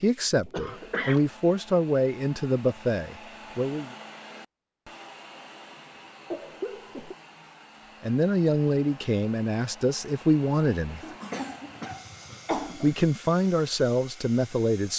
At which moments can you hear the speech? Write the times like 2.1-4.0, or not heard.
0.0-3.9, 8.0-11.0, 12.8-14.9.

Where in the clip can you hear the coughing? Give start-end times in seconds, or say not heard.
0.5-1.2, 6.3-7.2, 11.0-12.9.